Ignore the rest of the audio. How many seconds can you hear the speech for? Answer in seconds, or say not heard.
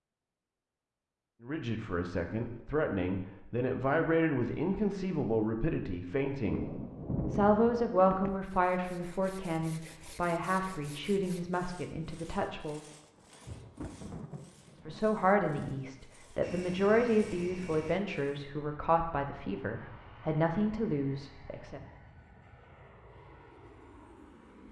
18 s.